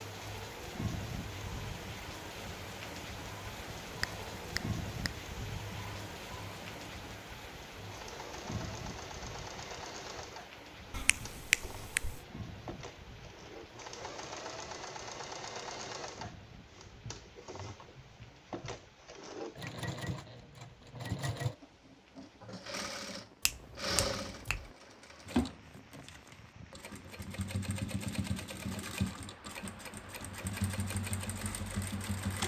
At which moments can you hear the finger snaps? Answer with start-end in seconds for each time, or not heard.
4.0-5.2, 10.9-12.2, 23.4-24.7.